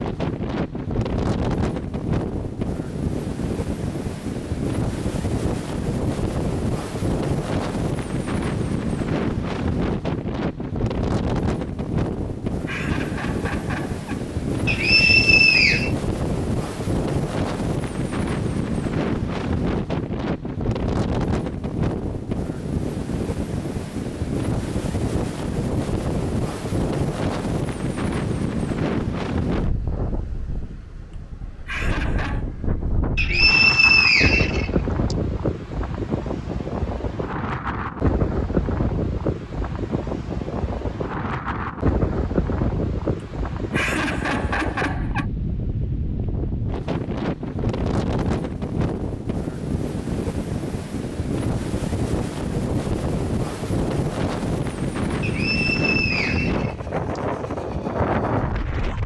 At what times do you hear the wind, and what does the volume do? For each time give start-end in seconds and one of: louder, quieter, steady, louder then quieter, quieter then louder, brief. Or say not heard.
0.0-59.0 steady.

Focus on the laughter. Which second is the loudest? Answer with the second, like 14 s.
44 s.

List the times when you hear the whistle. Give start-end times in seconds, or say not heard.
14.7-15.9, 33.1-35.1, 55.2-57.2.